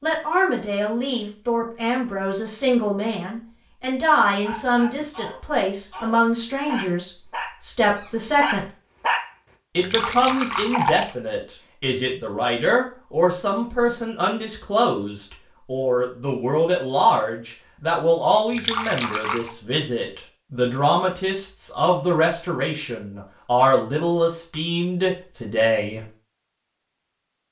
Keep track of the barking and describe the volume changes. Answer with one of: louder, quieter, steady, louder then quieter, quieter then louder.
louder.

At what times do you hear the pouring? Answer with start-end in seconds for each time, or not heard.
9.8-11.2, 18.4-19.5.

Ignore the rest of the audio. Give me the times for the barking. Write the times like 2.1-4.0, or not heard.
4.4-9.3.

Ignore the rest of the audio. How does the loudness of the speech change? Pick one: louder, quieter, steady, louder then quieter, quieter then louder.
steady.